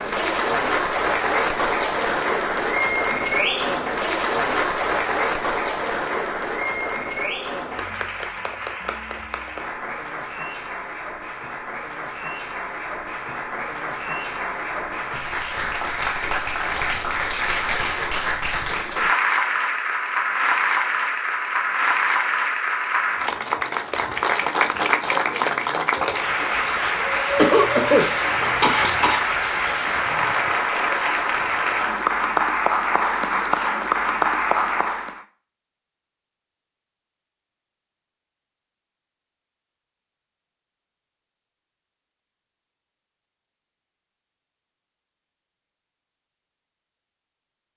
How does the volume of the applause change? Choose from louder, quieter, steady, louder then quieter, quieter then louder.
quieter then louder.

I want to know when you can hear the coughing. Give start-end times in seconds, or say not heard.
27.4-29.2.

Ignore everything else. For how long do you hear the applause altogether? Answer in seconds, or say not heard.
35 s.